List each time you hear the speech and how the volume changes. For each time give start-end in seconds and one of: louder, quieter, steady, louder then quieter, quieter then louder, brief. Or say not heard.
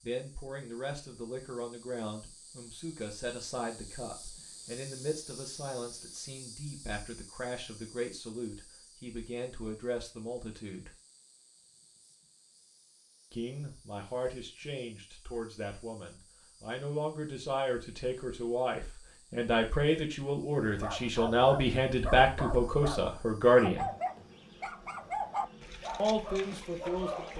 0.0-10.9 steady
13.3-23.9 louder
25.9-27.3 brief.